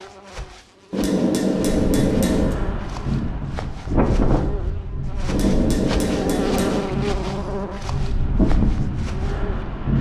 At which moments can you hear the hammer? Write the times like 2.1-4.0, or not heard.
0.9-2.5, 5.2-6.8.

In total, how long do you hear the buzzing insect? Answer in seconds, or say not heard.
10 s.